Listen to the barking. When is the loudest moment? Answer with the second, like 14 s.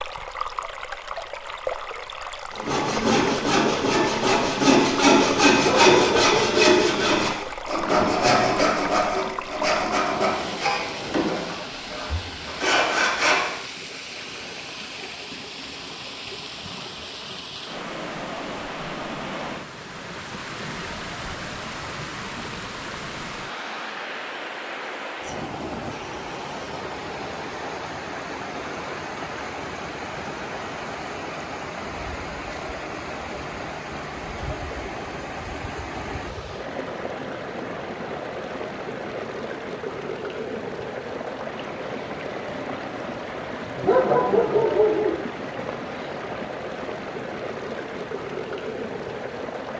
44 s.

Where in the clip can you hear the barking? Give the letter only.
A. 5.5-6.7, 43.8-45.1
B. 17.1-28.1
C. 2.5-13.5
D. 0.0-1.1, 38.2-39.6
A.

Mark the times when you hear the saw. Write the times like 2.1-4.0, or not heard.
2.5-13.5.